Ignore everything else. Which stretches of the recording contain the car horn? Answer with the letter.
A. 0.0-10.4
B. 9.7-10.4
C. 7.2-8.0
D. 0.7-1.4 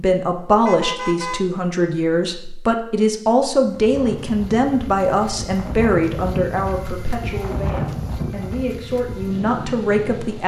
D.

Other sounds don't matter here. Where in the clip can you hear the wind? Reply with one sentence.
You can hear the wind from 3.6 to 10.4 s.